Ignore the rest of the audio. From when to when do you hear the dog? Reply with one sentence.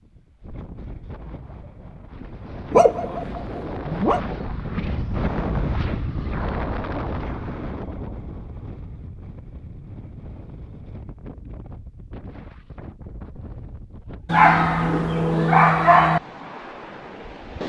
The dog can be heard from 2.7 to 4.2 s and from 14.2 to 16.2 s.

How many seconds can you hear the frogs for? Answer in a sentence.
The frogs can't be heard in this clip.